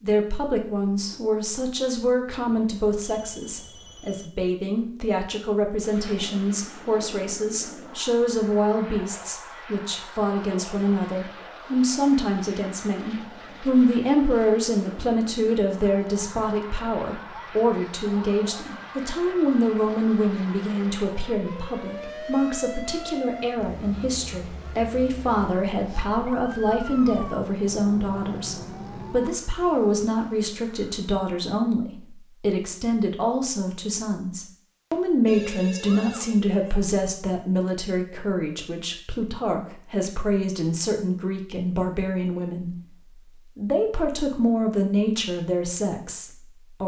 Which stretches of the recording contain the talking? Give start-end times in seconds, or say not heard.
0.0-42.8, 43.5-46.8.